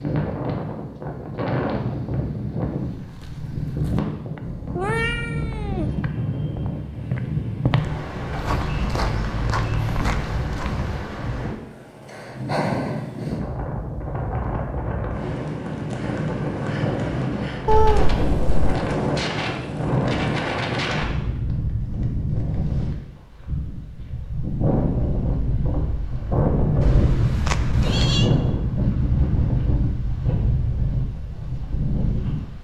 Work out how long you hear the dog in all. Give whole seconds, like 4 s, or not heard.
not heard.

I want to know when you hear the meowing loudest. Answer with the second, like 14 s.
18 s.